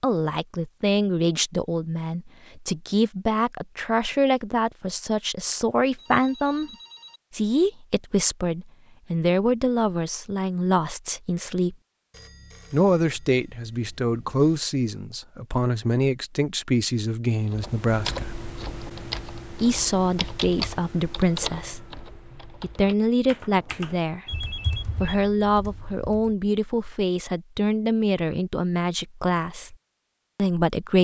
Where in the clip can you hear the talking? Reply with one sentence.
The talking can be heard from 0.0 to 6.7 s, from 7.3 to 11.8 s, from 12.7 to 18.4 s, from 19.6 to 29.8 s and from 30.4 to 30.9 s.